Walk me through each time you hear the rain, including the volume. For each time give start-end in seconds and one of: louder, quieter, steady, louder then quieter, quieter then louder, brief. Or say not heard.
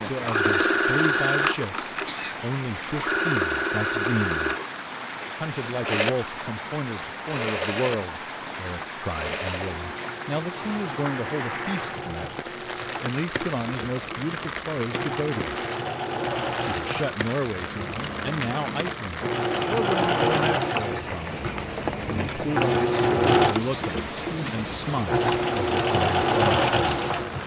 0.0-27.4 steady.